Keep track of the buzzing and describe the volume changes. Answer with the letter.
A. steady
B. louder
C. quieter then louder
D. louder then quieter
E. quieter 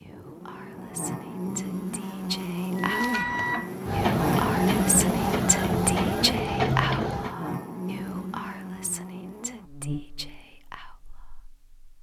D.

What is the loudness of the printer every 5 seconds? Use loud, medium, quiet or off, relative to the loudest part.
loud, loud, off.